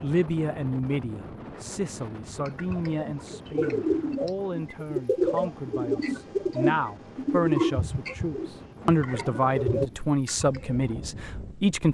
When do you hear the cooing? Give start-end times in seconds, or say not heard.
2.4-10.8.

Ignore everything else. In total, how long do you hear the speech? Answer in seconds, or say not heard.
12 s.